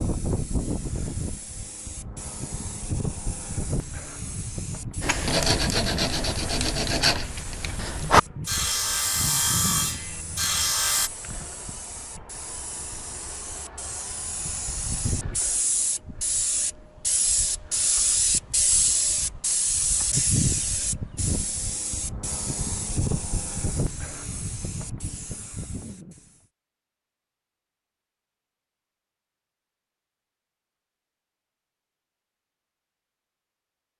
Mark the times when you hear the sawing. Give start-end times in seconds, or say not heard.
5.0-11.1.